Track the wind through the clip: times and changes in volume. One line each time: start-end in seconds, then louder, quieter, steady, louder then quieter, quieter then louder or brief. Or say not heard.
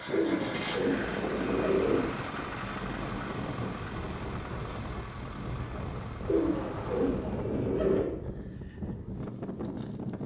0.0-10.2 steady.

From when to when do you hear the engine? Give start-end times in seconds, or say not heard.
0.0-7.6.